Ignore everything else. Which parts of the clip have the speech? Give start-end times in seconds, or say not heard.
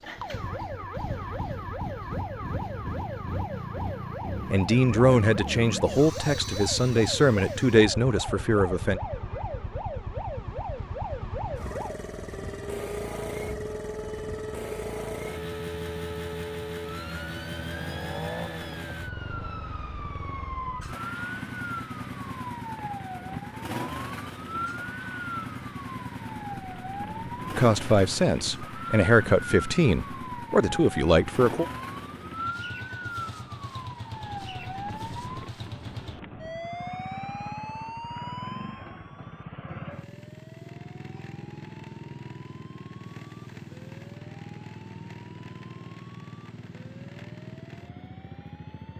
4.5-9.0, 27.6-31.6.